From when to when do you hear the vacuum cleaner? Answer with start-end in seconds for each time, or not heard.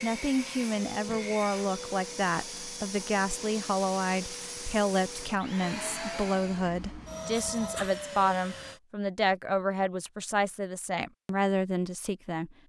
0.0-8.8.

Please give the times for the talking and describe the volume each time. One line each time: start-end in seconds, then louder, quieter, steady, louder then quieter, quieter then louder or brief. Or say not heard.
0.0-12.6 steady.